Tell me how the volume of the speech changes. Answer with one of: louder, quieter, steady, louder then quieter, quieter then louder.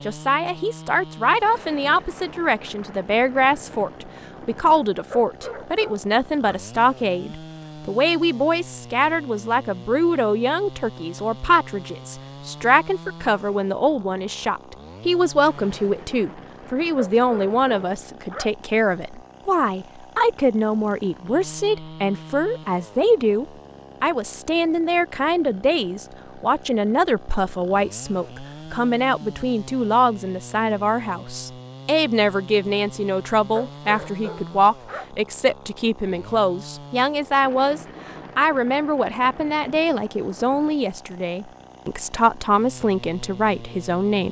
steady.